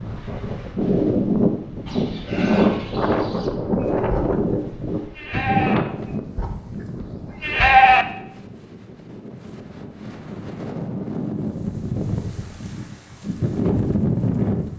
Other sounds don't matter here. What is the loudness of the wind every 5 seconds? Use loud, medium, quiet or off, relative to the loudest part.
loud, medium, loud.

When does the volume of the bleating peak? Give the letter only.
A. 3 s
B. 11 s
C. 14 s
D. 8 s
D.